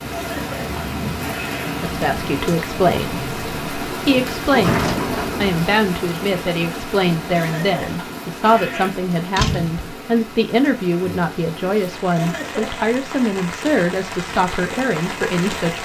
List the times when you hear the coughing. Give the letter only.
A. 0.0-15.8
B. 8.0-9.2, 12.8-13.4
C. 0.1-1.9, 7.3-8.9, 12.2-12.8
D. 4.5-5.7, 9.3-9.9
C.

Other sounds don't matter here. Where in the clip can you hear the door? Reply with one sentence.
You can hear the door from 4.5 to 5.7 s and from 9.3 to 9.9 s.